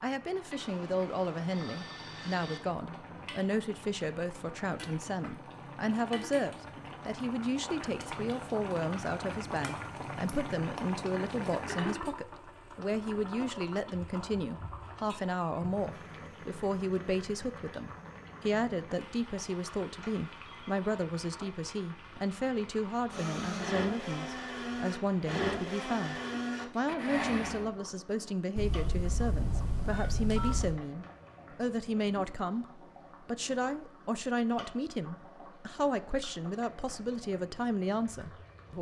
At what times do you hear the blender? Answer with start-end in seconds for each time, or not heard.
23.1-27.7.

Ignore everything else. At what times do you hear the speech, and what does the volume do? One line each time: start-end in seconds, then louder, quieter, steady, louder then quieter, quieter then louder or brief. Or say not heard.
0.0-38.7 steady.